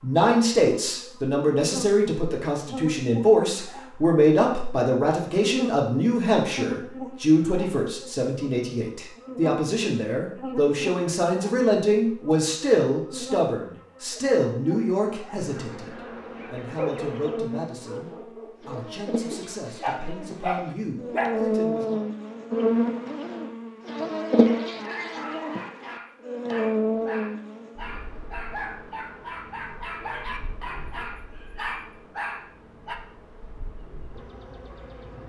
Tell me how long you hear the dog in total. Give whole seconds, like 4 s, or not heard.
13 s.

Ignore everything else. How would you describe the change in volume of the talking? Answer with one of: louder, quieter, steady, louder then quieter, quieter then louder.
quieter.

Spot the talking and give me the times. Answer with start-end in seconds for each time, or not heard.
0.0-22.1.